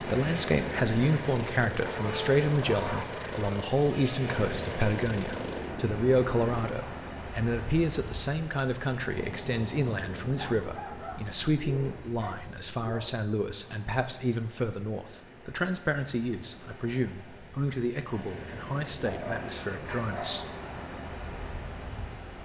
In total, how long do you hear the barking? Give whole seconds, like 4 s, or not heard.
6 s.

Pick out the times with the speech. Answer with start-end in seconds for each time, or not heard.
0.0-20.4.